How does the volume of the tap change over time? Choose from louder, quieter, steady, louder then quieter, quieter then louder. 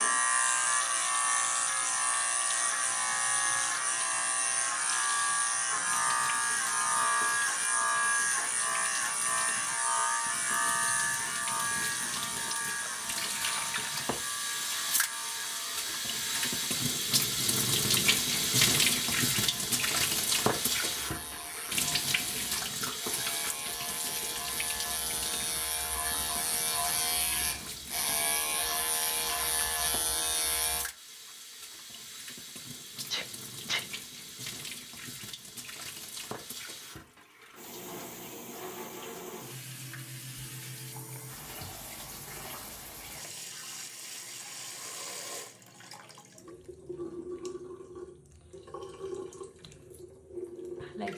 louder then quieter.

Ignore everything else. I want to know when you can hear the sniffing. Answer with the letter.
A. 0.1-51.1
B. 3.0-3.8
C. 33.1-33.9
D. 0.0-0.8
C.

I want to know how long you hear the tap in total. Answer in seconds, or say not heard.
51 s.